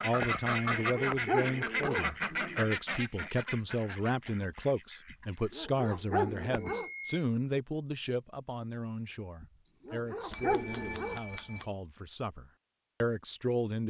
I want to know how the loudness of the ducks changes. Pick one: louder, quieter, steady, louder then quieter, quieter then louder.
quieter.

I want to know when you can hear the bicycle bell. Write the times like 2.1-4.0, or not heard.
0.2-2.0, 6.5-7.2, 10.3-11.7.